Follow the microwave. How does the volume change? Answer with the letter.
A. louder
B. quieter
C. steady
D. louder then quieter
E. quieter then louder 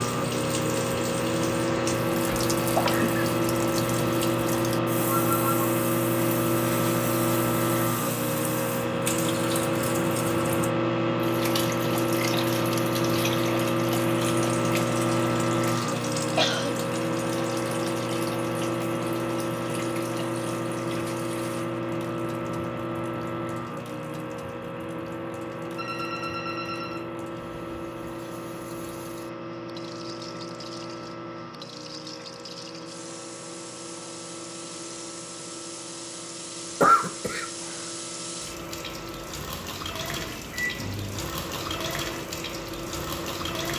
B.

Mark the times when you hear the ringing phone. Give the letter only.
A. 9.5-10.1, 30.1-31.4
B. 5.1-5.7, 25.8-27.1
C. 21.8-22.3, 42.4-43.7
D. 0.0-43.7
B.